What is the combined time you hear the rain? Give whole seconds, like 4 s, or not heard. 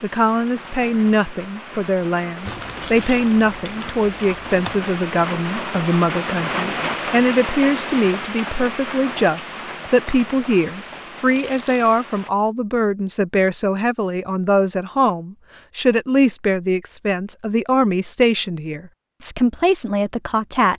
12 s.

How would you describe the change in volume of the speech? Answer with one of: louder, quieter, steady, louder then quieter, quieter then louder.
steady.